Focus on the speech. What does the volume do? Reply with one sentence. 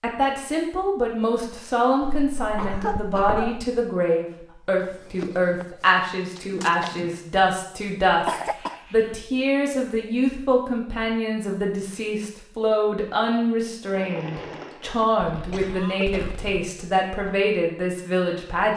The volume of the speech stays about the same.